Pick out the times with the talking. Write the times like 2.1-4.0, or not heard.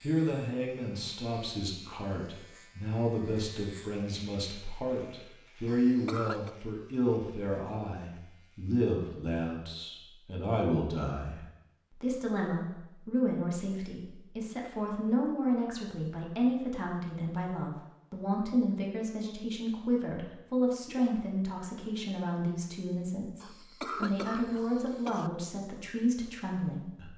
0.0-11.4, 12.0-27.1.